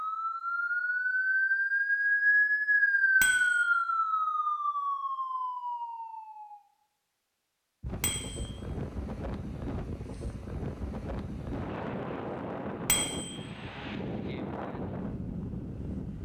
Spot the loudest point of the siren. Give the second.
3 s.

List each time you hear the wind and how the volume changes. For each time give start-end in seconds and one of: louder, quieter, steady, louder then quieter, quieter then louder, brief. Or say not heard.
7.8-16.2 steady.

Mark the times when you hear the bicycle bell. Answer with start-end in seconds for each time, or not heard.
3.2-3.6, 8.0-8.4, 12.8-13.3.